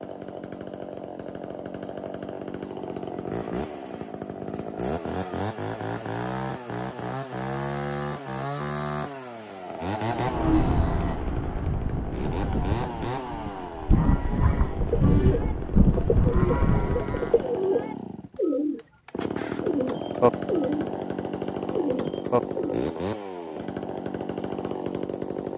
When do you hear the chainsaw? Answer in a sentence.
You can hear the chainsaw from 0.0 to 25.5 s.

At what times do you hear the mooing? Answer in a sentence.
You can hear the mooing from 10.1 to 17.4 s.